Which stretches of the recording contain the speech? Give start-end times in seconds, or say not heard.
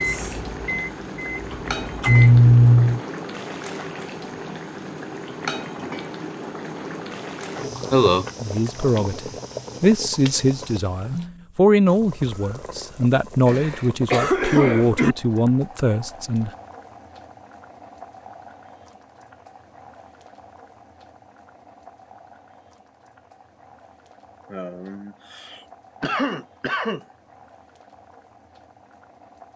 8.4-16.5.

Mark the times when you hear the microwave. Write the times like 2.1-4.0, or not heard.
0.0-3.0.